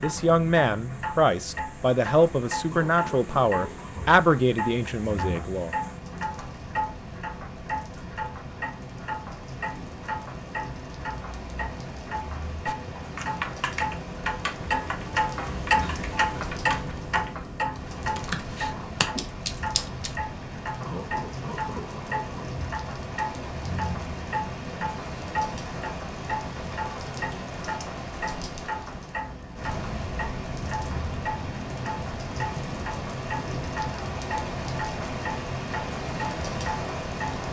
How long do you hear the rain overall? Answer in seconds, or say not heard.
37 s.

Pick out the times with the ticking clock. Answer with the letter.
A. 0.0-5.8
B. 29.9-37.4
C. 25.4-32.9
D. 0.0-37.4
D.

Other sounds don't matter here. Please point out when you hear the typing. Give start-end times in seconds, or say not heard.
12.7-20.2.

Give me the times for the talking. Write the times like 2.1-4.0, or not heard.
0.0-5.8.